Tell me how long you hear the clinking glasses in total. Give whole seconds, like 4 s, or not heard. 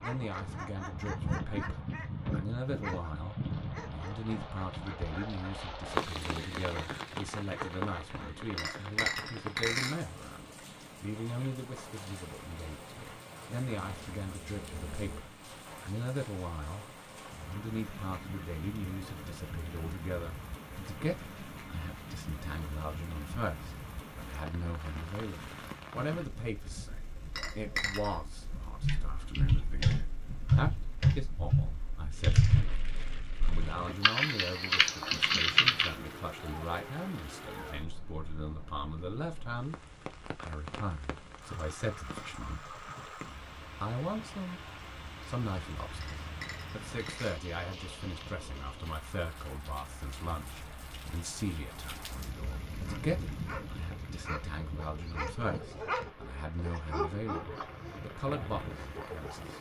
4 s.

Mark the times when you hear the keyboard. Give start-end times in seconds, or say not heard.
28.8-36.0.